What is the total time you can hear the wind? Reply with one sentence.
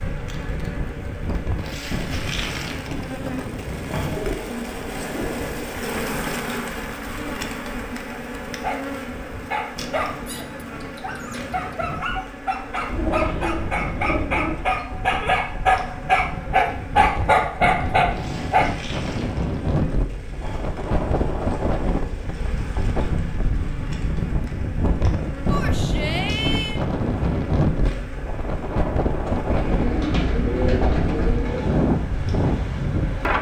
You can hear the wind for 33 seconds altogether.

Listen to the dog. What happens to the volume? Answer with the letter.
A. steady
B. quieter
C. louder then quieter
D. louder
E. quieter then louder
D.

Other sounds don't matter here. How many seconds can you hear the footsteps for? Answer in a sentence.
The footsteps can't be heard in this clip.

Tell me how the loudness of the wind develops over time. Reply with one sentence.
The volume of the wind goes down, then up.